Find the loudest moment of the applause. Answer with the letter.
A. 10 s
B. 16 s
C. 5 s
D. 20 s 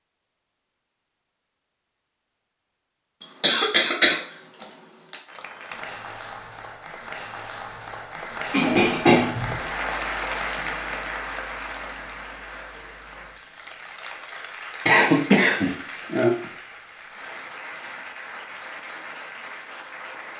A.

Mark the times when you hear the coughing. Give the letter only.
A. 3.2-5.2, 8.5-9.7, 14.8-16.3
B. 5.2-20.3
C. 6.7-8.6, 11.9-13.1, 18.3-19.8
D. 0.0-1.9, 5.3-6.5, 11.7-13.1
A.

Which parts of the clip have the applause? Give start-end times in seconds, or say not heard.
5.2-20.3.